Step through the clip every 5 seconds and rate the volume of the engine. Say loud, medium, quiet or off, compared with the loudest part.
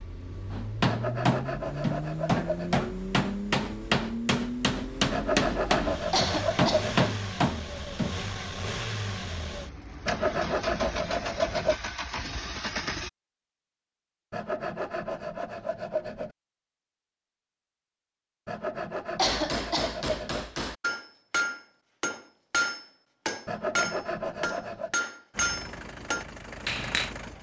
loud, loud, loud, off, off, medium.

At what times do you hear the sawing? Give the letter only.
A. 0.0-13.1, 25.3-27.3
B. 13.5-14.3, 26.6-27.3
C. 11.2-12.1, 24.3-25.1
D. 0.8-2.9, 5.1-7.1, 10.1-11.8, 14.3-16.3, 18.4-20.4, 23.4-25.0
D.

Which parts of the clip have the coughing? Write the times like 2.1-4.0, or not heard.
6.1-6.9, 19.1-19.9.